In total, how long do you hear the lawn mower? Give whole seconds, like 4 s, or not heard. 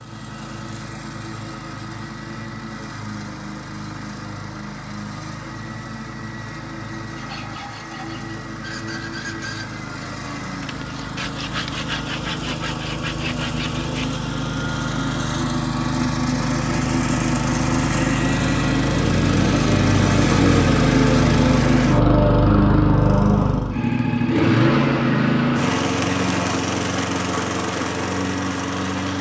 29 s.